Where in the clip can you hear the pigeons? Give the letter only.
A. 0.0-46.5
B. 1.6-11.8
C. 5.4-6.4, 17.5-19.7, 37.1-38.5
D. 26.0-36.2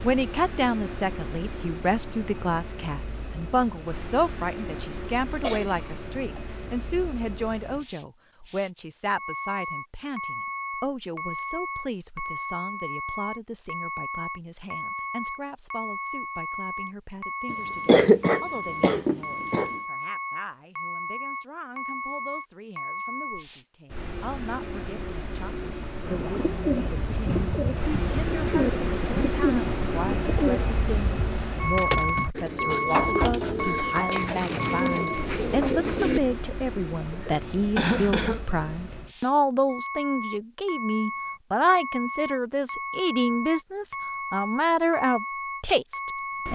D.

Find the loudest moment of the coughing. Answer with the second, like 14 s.
18 s.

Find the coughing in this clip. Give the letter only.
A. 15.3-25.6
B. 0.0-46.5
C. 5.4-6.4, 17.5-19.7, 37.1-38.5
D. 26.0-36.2
C.